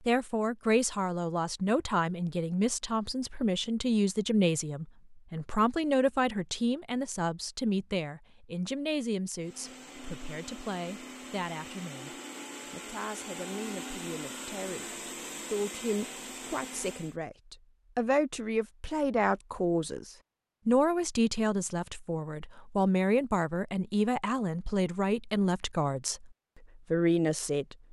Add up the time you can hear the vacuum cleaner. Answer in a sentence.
The vacuum cleaner can be heard for 8 seconds in total.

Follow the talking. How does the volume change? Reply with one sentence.
The volume of the talking goes down, then up.